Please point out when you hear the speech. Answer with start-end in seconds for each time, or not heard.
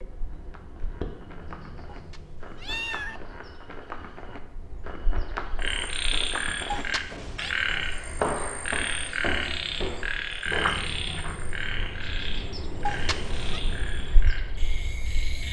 not heard.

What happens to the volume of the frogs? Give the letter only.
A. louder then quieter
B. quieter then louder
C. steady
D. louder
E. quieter
E.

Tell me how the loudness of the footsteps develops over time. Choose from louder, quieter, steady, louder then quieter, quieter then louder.
louder.